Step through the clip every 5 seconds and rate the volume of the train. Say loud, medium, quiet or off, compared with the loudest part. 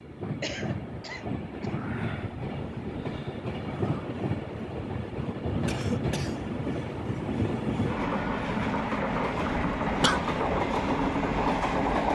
medium, loud, loud.